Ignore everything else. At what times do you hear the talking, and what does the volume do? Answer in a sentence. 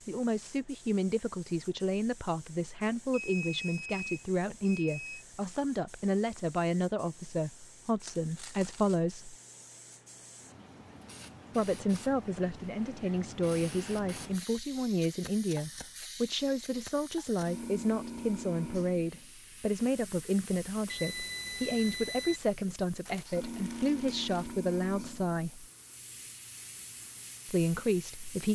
The talking can be heard from 0.1 to 9.3 s, at a steady volume; from 11.6 to 25.6 s, at a steady volume; and briefly from 27.4 to 28.5 s.